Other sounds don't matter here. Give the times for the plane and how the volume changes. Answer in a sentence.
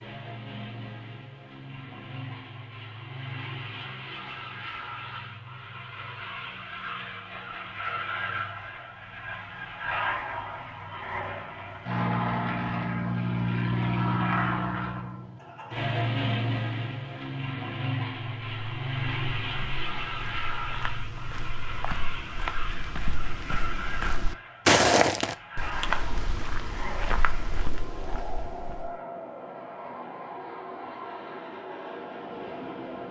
The plane can be heard from 0.0 to 33.0 s, getting louder then quieter.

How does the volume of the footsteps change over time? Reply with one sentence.
The volume of the footsteps goes up, then down.